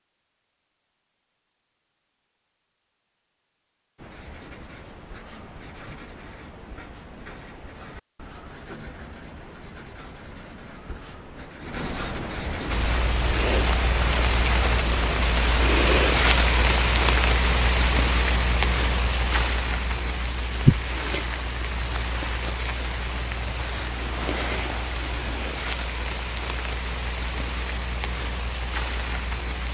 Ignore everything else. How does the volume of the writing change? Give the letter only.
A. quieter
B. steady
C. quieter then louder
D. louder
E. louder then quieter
D.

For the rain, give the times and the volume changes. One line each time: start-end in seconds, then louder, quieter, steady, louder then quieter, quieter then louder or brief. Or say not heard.
12.7-29.7 quieter.